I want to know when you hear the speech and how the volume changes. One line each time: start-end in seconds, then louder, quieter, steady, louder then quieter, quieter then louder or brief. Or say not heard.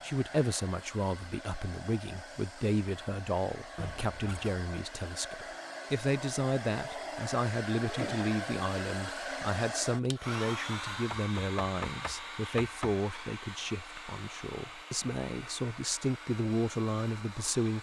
0.0-17.7 steady.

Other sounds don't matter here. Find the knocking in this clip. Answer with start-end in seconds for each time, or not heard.
3.8-4.6, 11.1-12.9.